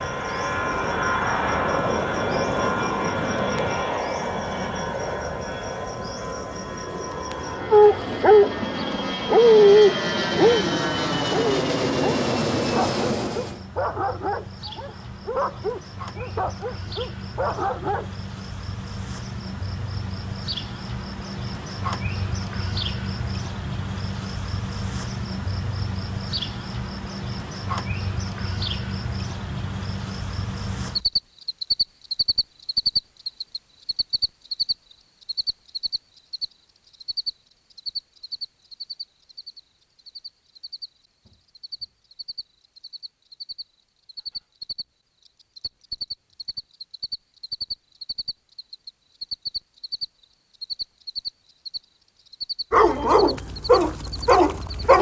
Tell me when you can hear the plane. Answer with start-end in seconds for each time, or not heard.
0.0-13.7.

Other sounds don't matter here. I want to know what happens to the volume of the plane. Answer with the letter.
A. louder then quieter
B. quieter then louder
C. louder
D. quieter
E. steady
B.